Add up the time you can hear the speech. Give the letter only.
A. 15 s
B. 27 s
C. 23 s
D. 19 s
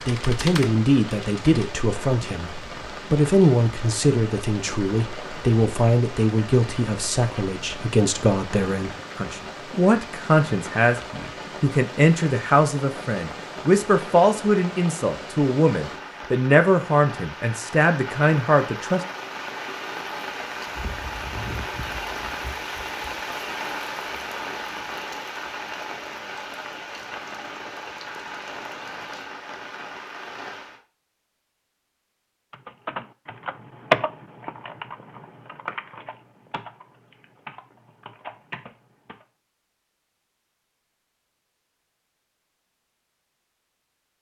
D.